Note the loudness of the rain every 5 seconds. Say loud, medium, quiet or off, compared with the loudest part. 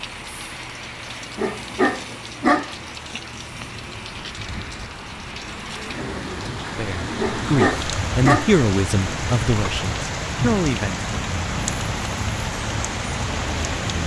medium, loud, loud.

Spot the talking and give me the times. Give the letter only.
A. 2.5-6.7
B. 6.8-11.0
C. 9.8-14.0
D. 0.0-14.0
B.